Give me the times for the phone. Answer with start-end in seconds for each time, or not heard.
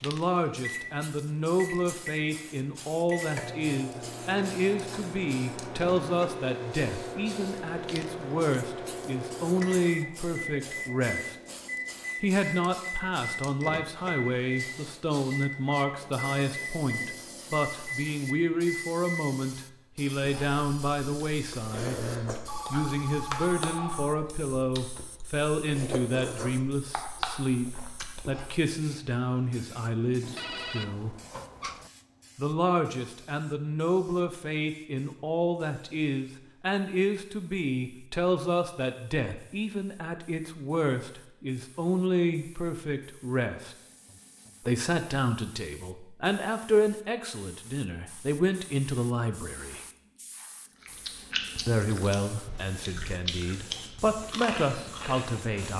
22.4-24.2, 30.2-31.9.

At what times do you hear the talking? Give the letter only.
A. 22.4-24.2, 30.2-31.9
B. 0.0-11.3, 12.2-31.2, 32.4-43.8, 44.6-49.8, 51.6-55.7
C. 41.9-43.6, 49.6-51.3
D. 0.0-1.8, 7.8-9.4
B.